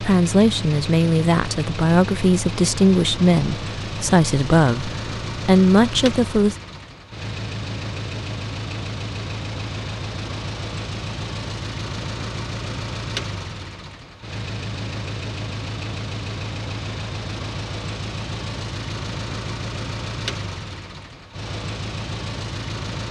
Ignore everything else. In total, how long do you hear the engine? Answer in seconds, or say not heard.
23 s.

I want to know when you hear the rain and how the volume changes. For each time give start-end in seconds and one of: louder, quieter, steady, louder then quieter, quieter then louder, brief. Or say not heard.
not heard.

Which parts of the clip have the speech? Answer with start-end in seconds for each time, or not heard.
0.0-6.5.